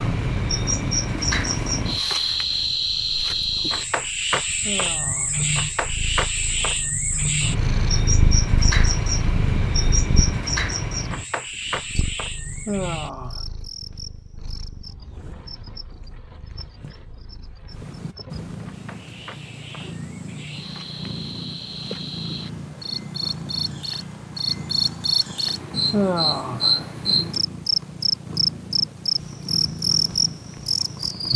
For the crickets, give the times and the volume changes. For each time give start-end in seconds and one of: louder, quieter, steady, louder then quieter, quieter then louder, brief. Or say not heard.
0.0-31.3 quieter then louder.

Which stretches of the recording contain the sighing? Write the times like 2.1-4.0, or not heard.
4.6-5.5, 12.7-13.4, 25.9-26.9.